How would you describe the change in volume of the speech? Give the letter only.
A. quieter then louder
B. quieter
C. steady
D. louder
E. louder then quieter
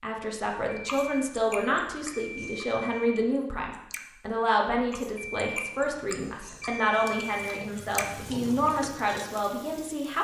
C.